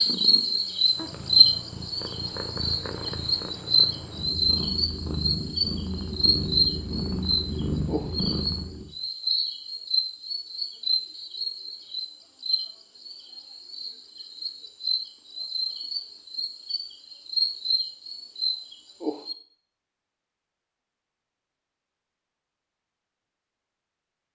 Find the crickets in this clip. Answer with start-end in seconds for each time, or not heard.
0.0-19.4.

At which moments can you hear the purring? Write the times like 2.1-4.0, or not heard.
0.0-8.9.